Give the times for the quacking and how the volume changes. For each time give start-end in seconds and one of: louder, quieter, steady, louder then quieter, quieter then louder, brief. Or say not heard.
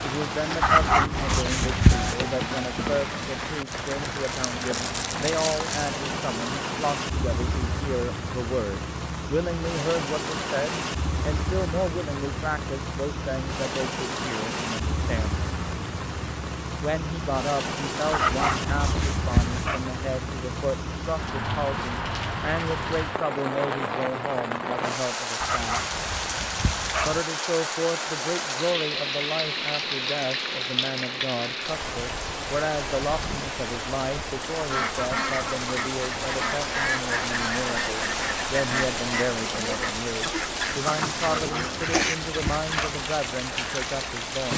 34.5-42.7 steady.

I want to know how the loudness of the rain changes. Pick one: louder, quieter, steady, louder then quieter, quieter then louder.
steady.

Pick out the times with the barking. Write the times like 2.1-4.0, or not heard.
0.6-2.1, 18.1-19.8, 25.4-27.2, 41.2-43.0.